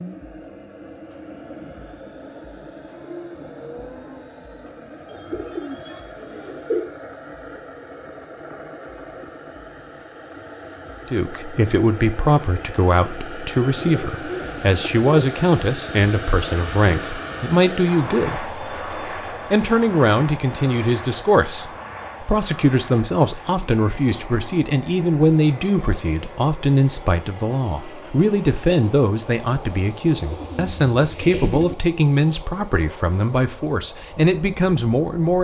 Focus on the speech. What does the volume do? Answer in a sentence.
The loudness of the speech stays about the same.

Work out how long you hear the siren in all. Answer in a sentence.
The siren can't be heard in this clip.